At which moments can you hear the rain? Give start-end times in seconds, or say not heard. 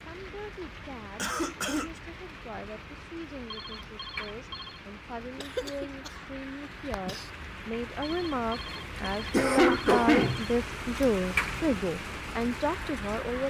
0.0-13.4.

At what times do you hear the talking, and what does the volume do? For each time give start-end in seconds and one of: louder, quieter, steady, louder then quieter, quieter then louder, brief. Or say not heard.
0.0-13.4 louder.